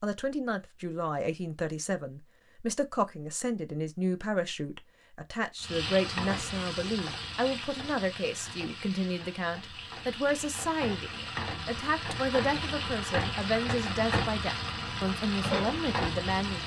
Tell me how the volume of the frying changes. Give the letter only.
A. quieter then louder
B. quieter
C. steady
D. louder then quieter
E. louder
A.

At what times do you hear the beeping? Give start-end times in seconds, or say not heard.
not heard.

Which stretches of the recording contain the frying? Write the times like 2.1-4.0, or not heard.
5.5-16.6.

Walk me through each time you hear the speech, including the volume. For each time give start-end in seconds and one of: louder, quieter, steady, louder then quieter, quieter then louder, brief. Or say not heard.
0.0-16.6 steady.